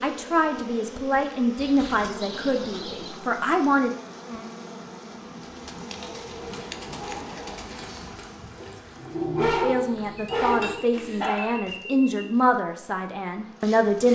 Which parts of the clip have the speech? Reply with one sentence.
The speech can be heard from 0.0 to 4.0 s and from 9.6 to 14.0 s.